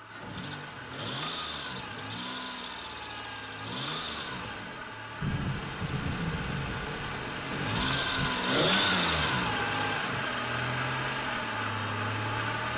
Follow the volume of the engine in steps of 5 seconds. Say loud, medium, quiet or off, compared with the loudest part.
medium, loud, loud.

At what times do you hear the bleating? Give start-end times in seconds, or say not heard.
not heard.